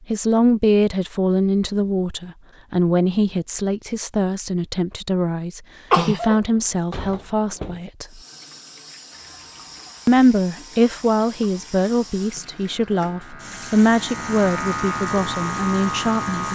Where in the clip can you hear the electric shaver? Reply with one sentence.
You can hear the electric shaver from 9.1 to 16.5 s.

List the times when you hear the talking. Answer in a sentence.
The talking can be heard from 0.1 to 8.1 s and from 10.1 to 16.5 s.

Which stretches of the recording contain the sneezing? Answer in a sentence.
The sneezing can be heard from 5.9 to 6.4 s.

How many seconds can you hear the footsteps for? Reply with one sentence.
You can't hear the footsteps here.